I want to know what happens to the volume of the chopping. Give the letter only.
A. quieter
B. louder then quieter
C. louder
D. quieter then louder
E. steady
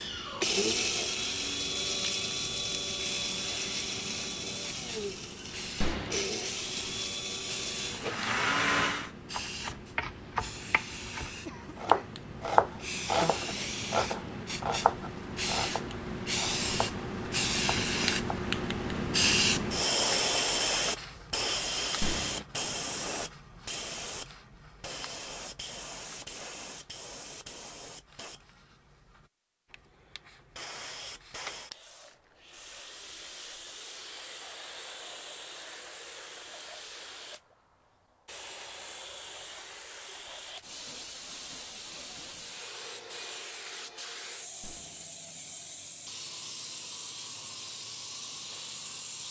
B.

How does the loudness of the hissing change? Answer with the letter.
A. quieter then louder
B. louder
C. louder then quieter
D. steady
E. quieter
C.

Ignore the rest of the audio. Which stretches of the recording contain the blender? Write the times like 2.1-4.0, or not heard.
0.0-9.1.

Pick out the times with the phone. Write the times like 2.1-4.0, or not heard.
5.8-6.2, 22.0-22.4, 44.6-45.0.